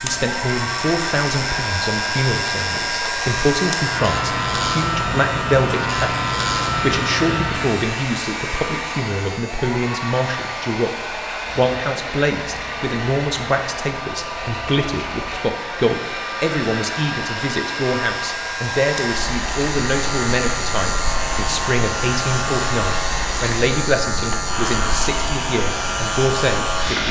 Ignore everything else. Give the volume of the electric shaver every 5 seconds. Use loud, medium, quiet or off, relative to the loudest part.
loud, loud, quiet, medium, loud, loud.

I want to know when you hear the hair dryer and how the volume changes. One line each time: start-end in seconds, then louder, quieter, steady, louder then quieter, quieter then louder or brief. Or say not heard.
0.1-27.0 steady.